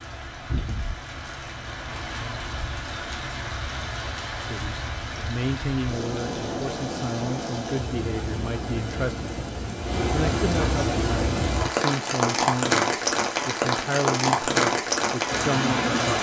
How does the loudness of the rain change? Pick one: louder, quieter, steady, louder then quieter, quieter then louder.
louder.